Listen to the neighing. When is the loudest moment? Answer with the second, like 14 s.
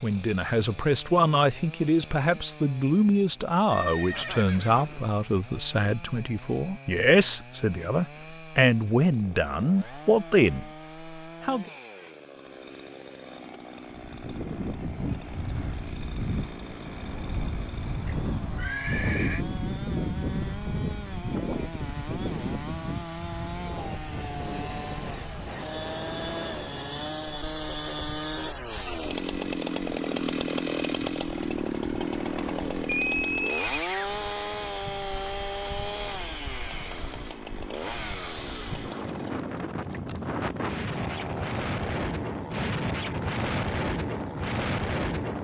33 s.